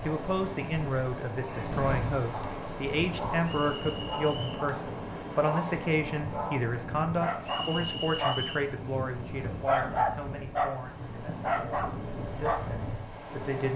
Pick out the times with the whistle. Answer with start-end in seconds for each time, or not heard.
3.4-4.7, 7.5-8.7.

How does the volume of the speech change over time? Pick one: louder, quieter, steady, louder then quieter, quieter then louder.
quieter.